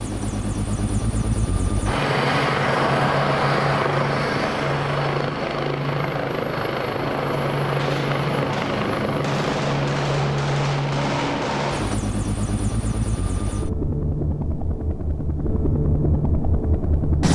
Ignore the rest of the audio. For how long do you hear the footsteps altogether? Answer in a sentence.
You can't hear the footsteps here.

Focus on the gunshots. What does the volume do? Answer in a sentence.
The volume of the gunshots goes up.